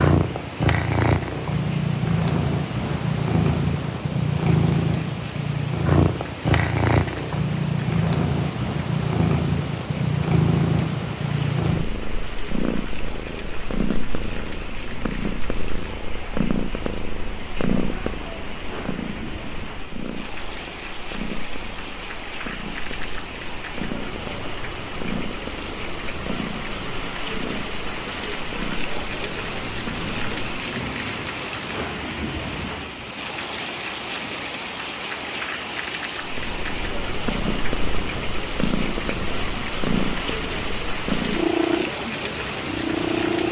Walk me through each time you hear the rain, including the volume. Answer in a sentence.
You can hear the rain from 0.0 to 43.4 s, getting louder.